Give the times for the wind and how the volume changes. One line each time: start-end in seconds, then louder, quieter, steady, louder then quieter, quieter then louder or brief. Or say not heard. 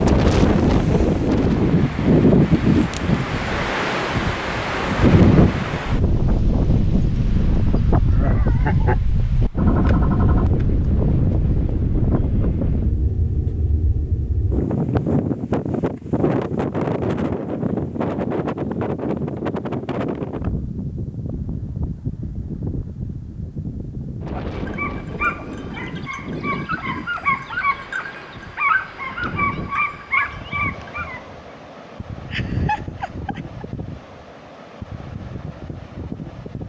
0.0-36.6 quieter.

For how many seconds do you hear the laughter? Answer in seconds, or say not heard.
2 s.